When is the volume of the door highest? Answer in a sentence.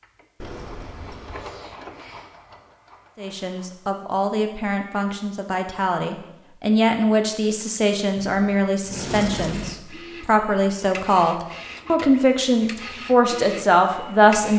The volume of the door peaks at 9 seconds.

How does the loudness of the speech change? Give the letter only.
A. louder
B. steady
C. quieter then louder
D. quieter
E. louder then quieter
A.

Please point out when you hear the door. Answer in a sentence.
The door can be heard from 0.4 to 1.4 s and from 8.2 to 9.8 s.